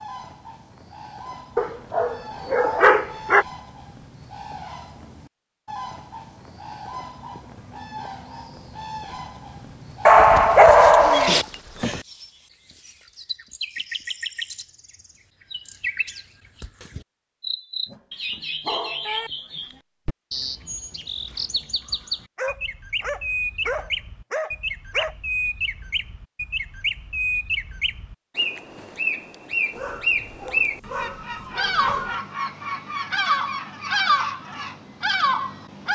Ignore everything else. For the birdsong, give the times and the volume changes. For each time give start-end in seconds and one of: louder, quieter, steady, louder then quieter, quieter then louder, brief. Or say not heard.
0.0-35.8 louder.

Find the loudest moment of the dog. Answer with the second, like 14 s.
11 s.